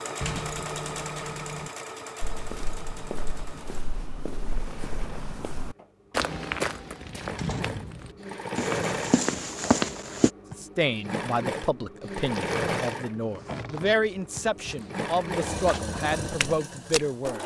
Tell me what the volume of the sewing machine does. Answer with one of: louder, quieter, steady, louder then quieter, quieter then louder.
quieter then louder.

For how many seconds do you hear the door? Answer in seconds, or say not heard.
4 s.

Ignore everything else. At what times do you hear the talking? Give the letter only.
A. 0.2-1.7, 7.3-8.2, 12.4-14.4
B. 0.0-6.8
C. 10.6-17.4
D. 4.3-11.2
C.